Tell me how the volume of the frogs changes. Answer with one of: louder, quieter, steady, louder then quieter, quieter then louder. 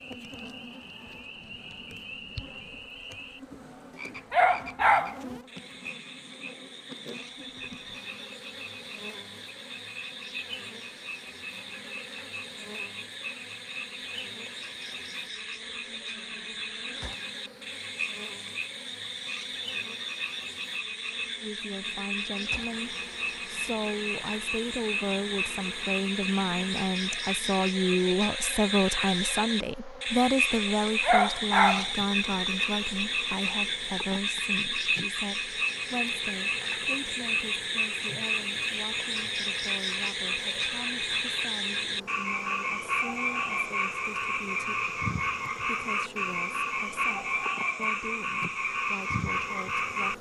louder.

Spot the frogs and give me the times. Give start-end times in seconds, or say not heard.
0.0-50.1.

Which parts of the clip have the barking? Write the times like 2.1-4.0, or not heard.
4.3-5.2, 31.0-31.9.